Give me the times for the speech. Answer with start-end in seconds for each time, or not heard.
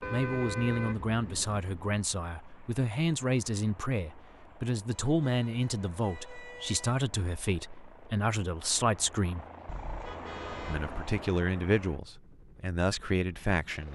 0.0-9.4, 10.7-13.8.